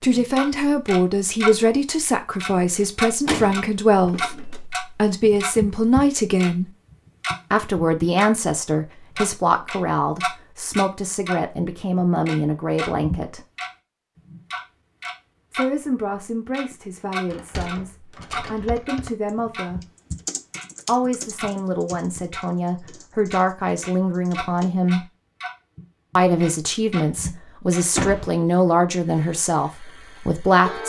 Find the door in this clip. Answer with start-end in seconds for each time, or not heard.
2.8-4.5, 17.2-18.9, 27.9-28.4.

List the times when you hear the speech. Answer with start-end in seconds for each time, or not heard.
0.0-6.7, 7.5-13.4, 15.5-19.8, 20.9-25.1, 26.1-30.8.